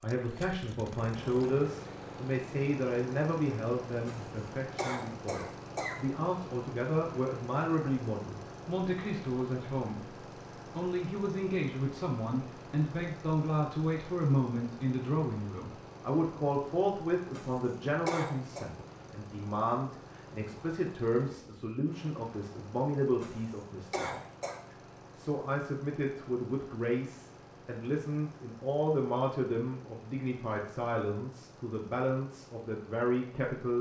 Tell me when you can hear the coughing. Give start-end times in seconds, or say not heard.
4.0-6.0, 17.3-18.6, 23.2-24.6.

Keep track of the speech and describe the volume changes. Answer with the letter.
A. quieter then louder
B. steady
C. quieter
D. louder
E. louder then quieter
B.